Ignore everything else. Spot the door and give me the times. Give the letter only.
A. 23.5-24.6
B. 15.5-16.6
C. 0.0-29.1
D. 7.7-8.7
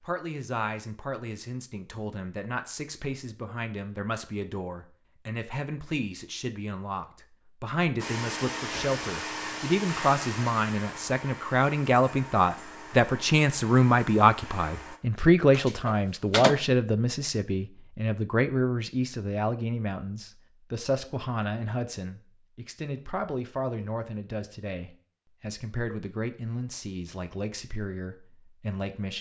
B.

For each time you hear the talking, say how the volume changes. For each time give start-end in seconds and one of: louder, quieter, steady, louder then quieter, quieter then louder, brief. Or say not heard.
0.0-29.1 louder then quieter.